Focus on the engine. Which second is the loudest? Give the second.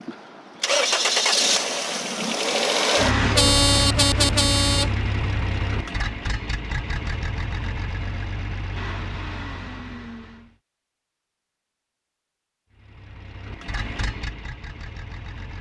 1 s.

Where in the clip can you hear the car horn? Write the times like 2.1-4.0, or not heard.
3.4-4.9.